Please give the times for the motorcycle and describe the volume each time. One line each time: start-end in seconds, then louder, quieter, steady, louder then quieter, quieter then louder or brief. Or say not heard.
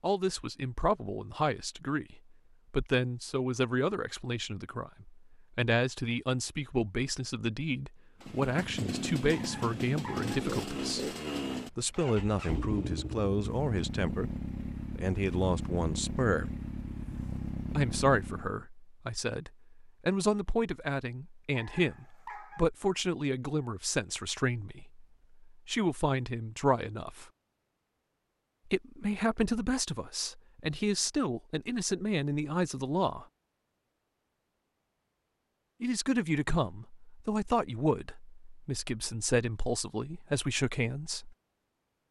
8.2-18.6 steady.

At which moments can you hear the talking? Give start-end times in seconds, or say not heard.
0.0-14.3, 14.9-16.6, 17.8-27.2, 28.6-33.2, 35.8-41.4.